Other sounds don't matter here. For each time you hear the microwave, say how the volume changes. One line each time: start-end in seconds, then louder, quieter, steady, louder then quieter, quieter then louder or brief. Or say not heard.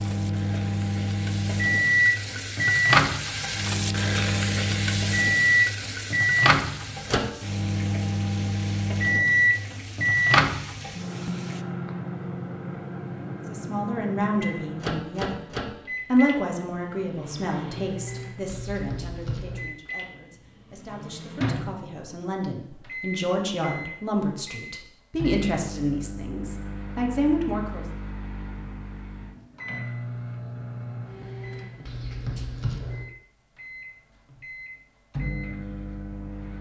0.0-36.5 quieter.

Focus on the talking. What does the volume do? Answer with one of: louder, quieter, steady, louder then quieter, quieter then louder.
quieter then louder.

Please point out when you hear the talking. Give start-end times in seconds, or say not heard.
13.4-27.9.